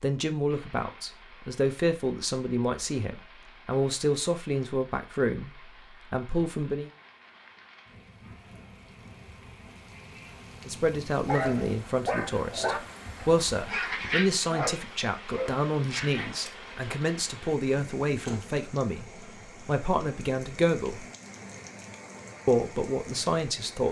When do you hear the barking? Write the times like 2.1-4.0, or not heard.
11.2-16.5.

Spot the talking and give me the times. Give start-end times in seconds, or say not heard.
0.0-6.9, 10.7-21.1, 22.4-23.8.